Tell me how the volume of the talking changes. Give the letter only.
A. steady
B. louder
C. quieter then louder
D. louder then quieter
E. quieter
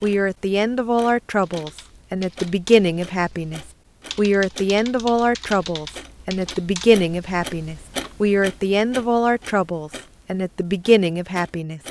A.